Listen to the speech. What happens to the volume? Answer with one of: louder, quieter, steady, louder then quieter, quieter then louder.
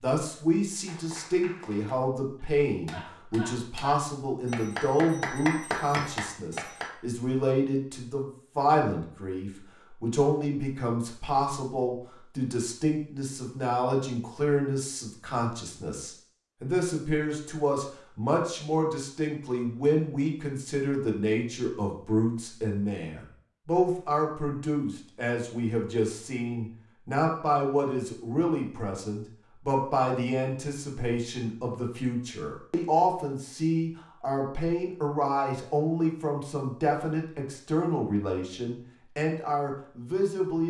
steady.